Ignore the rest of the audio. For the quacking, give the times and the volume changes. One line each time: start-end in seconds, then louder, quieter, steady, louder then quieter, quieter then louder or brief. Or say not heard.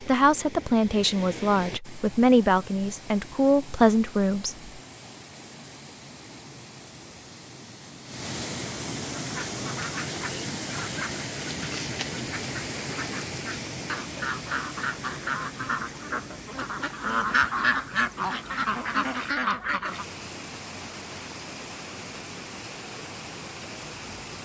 9.2-20.1 louder.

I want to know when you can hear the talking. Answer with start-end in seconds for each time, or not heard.
0.0-4.7.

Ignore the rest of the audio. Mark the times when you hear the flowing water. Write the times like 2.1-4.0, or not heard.
0.0-24.4.